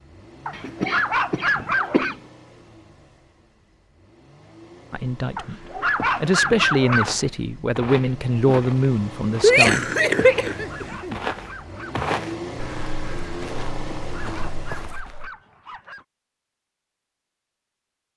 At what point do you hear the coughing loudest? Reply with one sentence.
The loudest moment of the coughing is at 10 seconds.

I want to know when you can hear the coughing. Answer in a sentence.
The coughing can be heard from 0.5 to 2.1 s and from 9.4 to 11.2 s.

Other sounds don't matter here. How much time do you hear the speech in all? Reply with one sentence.
You can hear the speech for 5 seconds altogether.